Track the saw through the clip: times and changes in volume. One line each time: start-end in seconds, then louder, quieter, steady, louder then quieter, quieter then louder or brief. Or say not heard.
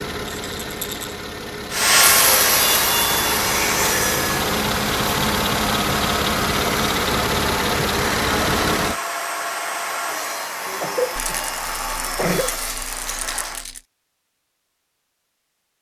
1.7-13.7 quieter.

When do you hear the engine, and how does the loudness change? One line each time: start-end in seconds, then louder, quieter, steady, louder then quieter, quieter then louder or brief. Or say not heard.
0.0-9.0 louder.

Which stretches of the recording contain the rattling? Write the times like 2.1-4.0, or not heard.
0.3-1.1, 11.2-13.8.